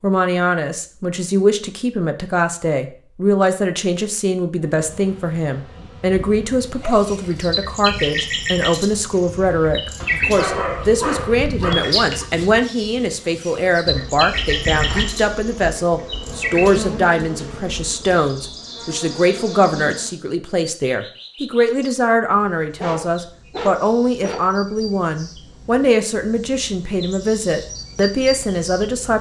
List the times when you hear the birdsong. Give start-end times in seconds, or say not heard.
6.8-29.1.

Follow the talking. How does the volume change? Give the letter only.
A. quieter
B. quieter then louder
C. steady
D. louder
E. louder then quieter
C.